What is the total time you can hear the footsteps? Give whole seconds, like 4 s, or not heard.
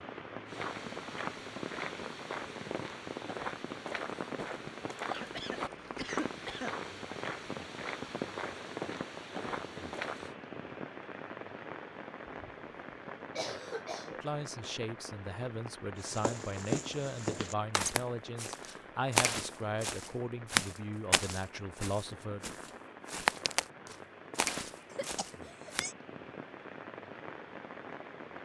20 s.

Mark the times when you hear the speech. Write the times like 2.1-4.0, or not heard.
14.1-22.5.